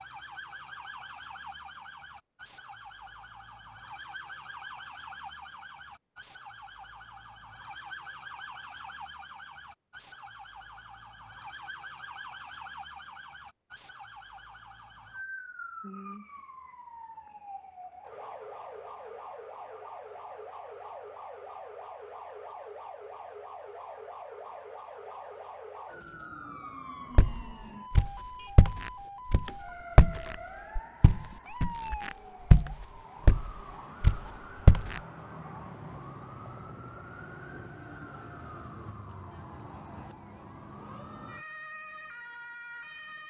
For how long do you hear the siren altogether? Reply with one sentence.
The siren can be heard for 43 seconds in total.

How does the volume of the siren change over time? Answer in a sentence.
The loudness of the siren stays about the same.